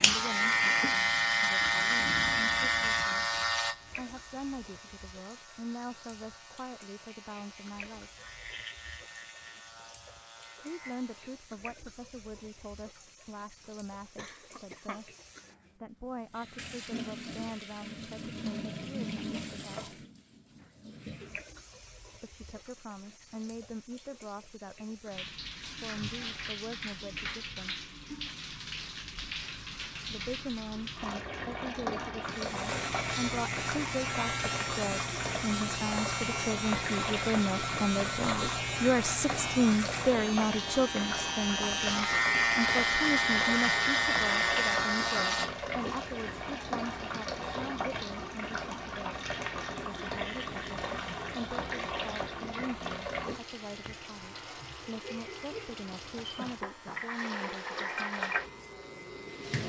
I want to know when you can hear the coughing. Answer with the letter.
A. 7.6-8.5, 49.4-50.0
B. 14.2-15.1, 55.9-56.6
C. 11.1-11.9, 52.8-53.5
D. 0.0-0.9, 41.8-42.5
B.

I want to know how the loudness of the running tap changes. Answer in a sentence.
The volume of the running tap goes up.